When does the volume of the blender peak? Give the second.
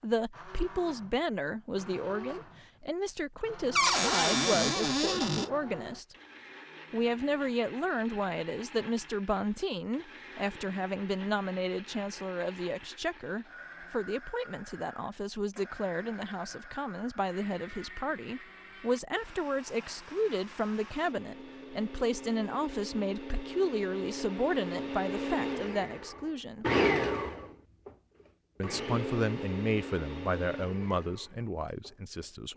27 s.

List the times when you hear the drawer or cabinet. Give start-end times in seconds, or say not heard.
3.8-5.5.